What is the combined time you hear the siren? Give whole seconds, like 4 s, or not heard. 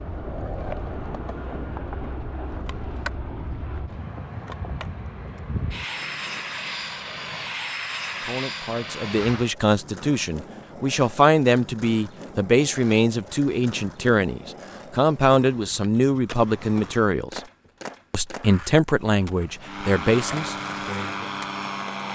not heard.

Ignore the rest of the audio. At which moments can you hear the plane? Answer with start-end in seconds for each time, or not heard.
0.0-9.6, 19.6-22.1.